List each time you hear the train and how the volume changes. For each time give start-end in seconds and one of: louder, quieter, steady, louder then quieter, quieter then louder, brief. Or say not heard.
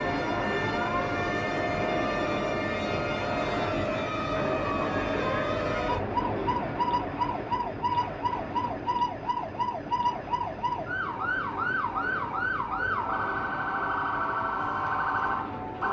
0.0-15.8 quieter.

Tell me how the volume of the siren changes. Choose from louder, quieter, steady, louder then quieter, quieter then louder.
steady.